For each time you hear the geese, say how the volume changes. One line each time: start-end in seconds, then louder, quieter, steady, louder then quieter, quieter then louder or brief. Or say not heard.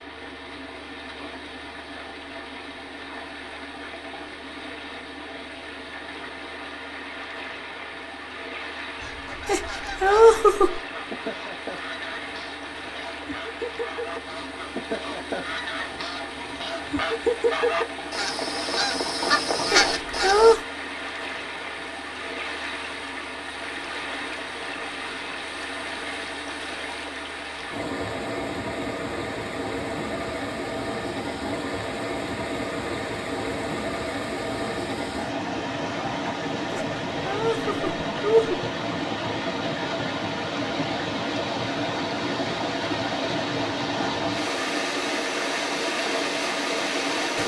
8.9-20.6 louder.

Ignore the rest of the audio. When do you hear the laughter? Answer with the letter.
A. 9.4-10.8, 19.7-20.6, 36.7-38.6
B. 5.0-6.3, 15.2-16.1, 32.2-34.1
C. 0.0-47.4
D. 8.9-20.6
A.